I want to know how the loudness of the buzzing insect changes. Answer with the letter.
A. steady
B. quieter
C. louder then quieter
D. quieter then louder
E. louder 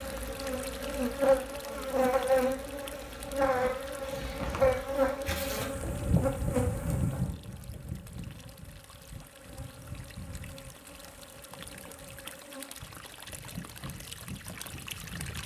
B.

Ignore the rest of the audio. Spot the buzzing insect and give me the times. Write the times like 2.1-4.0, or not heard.
0.0-15.4.